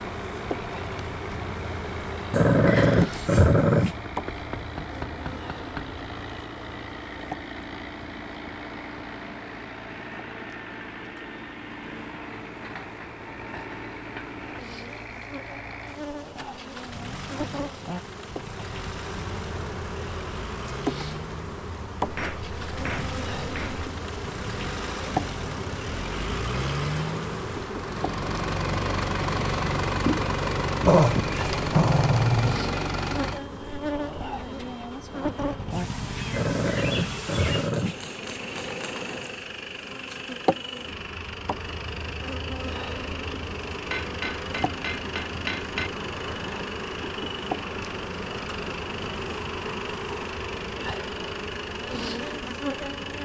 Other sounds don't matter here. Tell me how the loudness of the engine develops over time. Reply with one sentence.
The volume of the engine goes up, then down.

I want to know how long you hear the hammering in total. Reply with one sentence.
The hammering can be heard for 6 seconds in total.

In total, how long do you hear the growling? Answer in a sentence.
You can hear the growling for 5 seconds altogether.